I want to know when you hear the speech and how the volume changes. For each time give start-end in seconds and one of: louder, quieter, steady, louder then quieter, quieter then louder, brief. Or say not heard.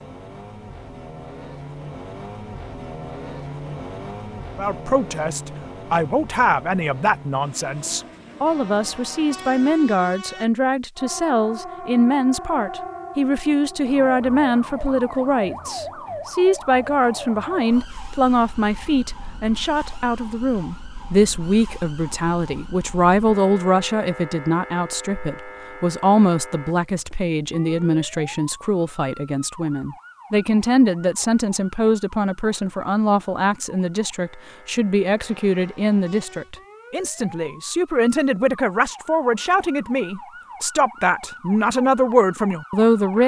4.5-43.2 steady.